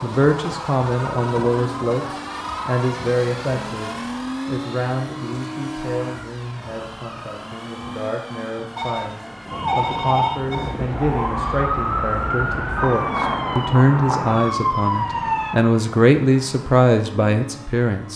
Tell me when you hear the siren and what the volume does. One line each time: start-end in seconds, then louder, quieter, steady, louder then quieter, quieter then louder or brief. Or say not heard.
9.4-15.6 steady.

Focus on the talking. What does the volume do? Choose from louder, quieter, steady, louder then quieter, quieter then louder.
quieter then louder.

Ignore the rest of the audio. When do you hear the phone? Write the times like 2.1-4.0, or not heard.
8.8-10.8.